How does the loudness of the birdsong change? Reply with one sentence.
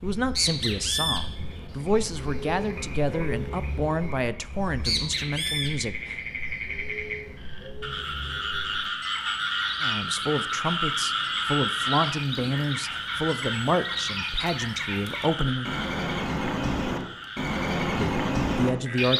The volume of the birdsong goes down, then up.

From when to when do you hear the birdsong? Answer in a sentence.
You can hear the birdsong from 0.0 to 19.1 s.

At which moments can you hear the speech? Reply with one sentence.
You can hear the speech from 0.0 to 6.2 s, from 9.8 to 15.7 s and from 17.9 to 19.1 s.